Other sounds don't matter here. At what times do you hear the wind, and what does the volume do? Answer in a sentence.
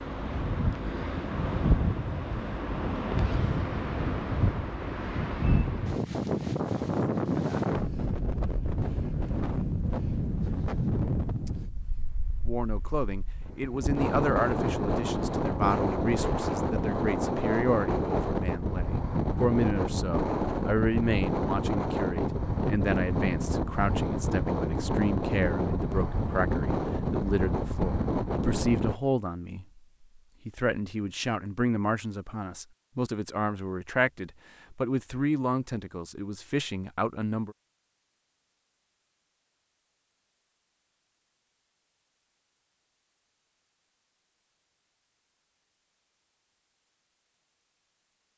The wind can be heard from 0.0 to 29.0 s, at a steady volume.